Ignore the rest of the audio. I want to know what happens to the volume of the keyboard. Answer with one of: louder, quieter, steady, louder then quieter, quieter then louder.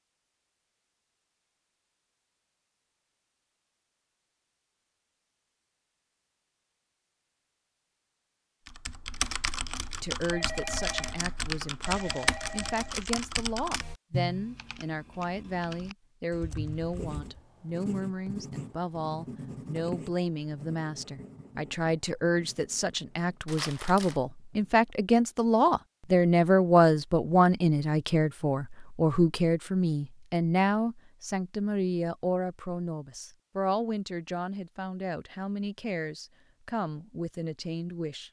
quieter.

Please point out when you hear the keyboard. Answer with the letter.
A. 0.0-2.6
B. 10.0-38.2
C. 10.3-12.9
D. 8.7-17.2
D.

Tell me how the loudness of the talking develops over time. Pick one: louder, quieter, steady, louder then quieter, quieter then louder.
louder then quieter.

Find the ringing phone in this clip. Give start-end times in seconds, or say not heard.
10.3-12.9.